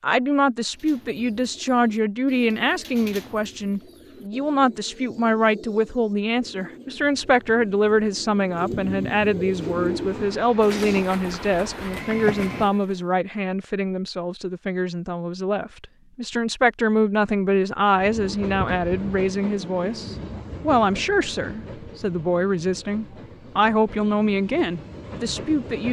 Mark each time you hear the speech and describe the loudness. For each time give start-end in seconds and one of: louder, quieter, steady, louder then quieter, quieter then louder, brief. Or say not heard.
0.0-25.8 steady.